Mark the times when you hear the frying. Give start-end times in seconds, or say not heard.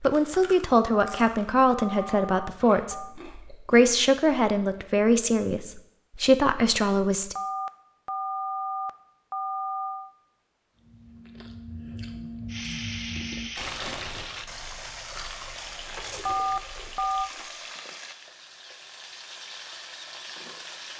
12.4-20.9.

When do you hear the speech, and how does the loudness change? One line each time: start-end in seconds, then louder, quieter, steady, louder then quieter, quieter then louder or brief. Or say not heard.
0.0-7.3 steady.